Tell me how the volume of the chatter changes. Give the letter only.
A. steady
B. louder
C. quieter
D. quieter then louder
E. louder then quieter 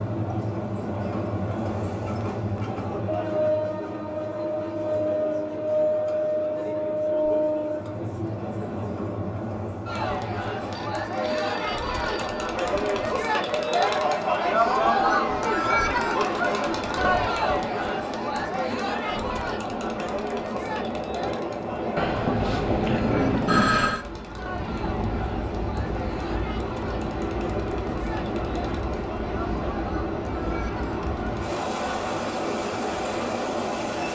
E.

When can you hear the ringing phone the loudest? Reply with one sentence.
The volume of the ringing phone peaks at 24 seconds.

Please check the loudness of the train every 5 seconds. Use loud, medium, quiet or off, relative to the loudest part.
loud, loud, medium, medium, loud, loud, loud.